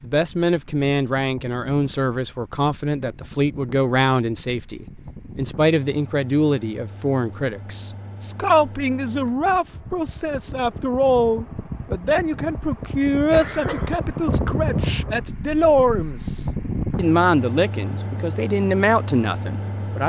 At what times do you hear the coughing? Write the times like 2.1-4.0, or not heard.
13.3-14.0.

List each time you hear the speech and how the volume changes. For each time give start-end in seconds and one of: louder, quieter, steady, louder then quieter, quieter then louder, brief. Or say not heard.
0.0-20.0 steady.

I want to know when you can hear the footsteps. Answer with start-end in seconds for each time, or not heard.
not heard.